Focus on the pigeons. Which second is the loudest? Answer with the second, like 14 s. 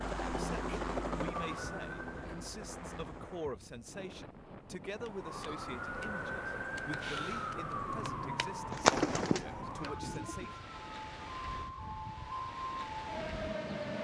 9 s.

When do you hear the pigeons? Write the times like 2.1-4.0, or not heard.
7.7-10.5.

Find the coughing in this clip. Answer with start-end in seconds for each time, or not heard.
not heard.